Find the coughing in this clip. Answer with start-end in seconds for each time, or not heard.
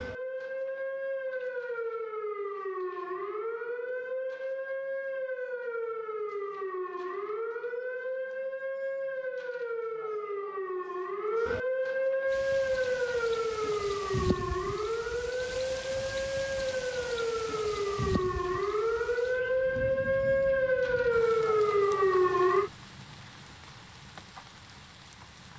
not heard.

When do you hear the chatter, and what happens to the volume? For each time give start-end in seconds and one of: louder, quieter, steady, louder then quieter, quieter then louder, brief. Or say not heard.
not heard.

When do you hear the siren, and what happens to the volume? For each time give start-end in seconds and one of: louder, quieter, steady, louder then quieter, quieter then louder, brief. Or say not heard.
0.0-22.7 louder.